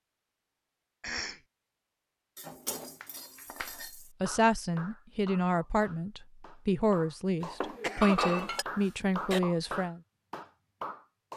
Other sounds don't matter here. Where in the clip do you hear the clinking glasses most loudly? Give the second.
8 s.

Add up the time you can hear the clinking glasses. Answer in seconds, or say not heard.
3 s.